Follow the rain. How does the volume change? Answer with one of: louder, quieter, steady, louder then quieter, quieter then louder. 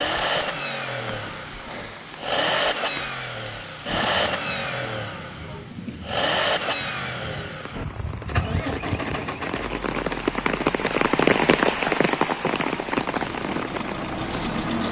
louder.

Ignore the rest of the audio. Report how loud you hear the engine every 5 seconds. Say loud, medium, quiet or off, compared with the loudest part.
loud, loud, medium.